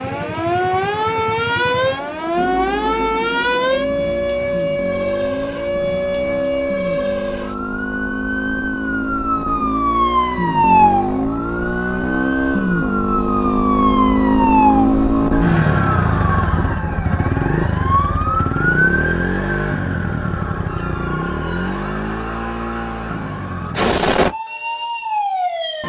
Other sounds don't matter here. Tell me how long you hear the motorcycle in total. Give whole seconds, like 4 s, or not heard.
24 s.